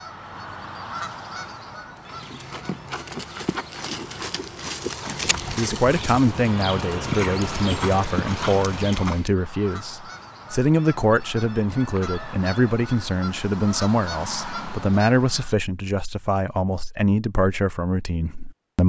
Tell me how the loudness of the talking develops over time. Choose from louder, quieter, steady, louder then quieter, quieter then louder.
steady.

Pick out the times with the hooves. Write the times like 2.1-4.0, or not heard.
1.9-9.3.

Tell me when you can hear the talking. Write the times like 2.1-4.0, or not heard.
5.2-18.8.